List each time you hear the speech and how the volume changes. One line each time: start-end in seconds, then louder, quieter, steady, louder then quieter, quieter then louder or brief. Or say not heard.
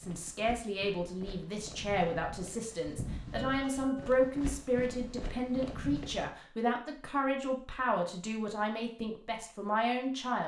0.0-10.4 steady.